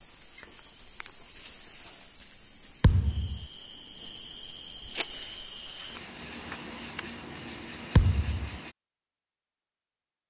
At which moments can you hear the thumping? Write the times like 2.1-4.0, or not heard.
2.8-3.5, 8.0-8.6.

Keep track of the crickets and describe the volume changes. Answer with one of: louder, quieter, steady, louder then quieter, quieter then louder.
louder.